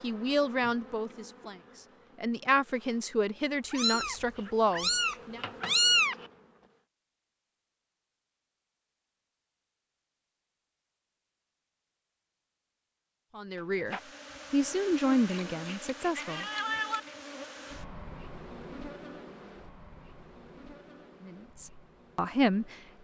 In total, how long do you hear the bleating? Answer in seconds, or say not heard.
not heard.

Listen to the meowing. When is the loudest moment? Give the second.
6 s.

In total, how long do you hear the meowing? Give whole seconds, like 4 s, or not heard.
3 s.